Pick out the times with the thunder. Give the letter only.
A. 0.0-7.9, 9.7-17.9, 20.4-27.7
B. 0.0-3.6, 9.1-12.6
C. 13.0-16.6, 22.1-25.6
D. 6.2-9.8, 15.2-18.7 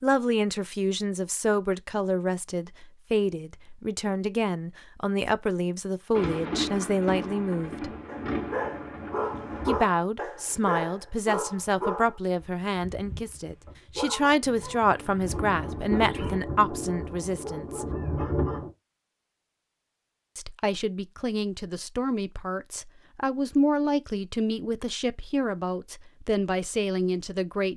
D.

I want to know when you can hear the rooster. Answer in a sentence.
The rooster can't be heard in this clip.